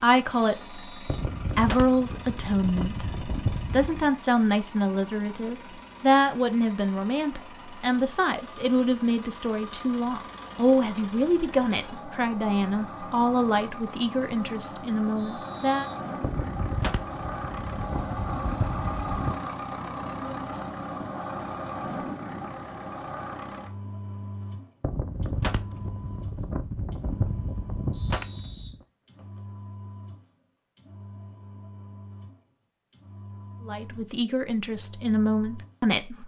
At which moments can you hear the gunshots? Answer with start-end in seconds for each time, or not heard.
1.1-4.1, 16.2-19.4, 24.8-28.8.